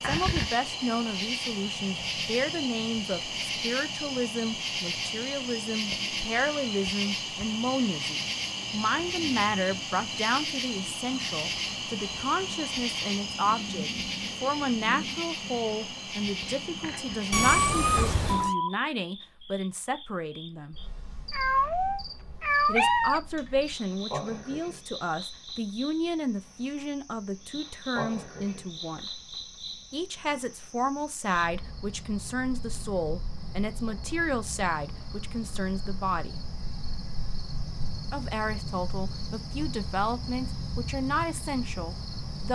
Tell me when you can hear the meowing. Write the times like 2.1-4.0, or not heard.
17.3-18.6, 21.3-23.2.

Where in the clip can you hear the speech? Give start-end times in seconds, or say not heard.
0.0-20.8, 22.6-29.1, 29.9-36.4, 38.1-42.5.